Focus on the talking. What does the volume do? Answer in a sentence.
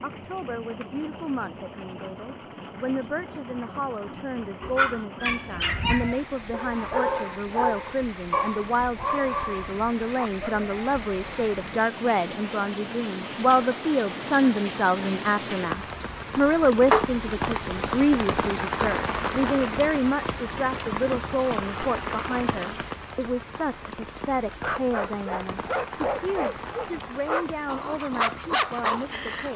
The loudness of the talking goes up, then down.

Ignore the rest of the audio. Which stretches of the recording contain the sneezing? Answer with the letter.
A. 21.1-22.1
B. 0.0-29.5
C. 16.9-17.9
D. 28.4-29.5
C.